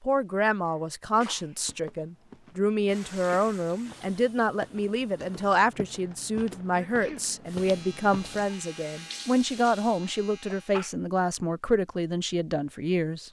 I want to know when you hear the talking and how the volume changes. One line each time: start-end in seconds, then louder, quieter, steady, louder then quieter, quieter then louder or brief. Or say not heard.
0.0-13.2 steady.